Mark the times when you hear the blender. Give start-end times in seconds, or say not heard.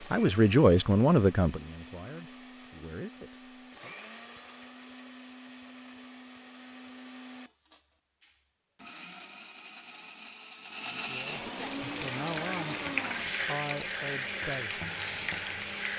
0.0-15.9.